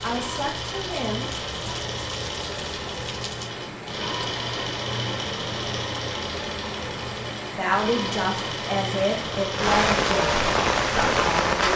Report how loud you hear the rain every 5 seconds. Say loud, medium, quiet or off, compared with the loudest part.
quiet, medium, loud.